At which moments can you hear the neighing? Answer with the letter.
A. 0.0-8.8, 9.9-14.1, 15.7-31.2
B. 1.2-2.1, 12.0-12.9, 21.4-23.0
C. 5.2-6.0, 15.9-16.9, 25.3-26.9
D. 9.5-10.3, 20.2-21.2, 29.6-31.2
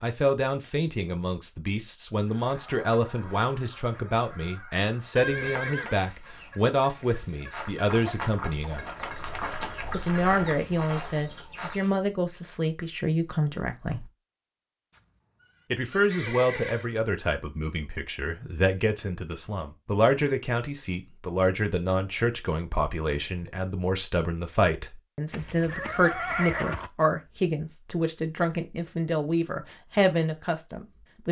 C.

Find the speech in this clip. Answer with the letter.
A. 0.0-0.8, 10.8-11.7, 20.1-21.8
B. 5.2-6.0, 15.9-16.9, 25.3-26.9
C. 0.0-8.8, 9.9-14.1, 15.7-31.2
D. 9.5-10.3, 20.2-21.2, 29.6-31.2
C.